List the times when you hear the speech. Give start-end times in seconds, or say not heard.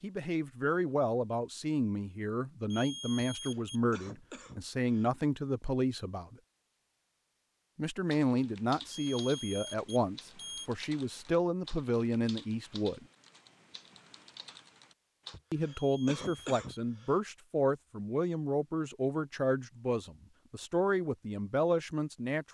0.0-6.3, 7.8-13.1, 15.5-22.4.